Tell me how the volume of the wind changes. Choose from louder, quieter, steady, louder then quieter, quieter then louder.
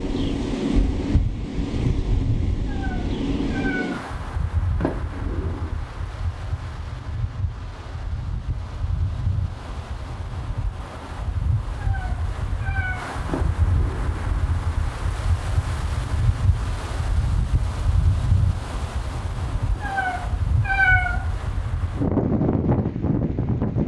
quieter then louder.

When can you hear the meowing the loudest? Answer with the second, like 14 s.
21 s.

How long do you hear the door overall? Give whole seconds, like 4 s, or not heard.
2 s.